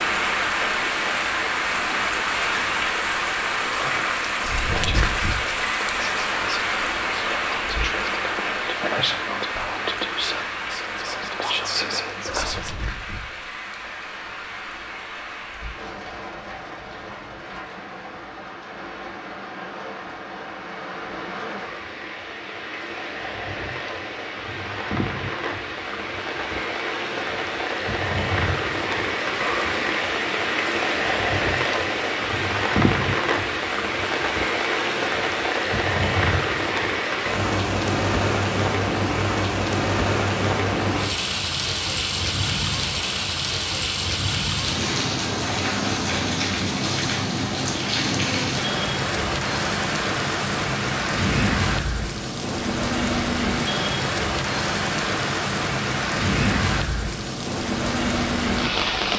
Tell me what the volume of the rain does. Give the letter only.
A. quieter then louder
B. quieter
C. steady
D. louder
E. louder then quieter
A.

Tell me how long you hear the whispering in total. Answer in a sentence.
You can hear the whispering for 9 seconds altogether.